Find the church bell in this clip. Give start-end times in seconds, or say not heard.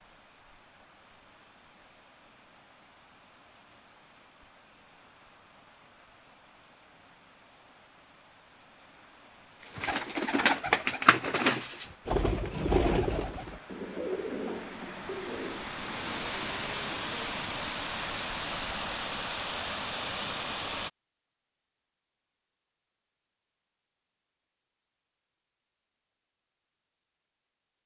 not heard.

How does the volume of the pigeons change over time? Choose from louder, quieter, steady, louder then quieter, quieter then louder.
quieter.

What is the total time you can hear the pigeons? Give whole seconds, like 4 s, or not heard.
8 s.